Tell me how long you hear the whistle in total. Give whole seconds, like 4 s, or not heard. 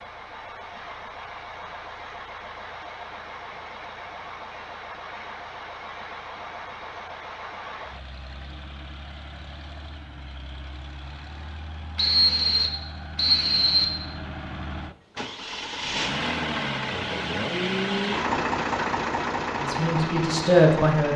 2 s.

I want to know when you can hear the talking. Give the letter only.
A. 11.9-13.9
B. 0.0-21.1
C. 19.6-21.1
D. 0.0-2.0
C.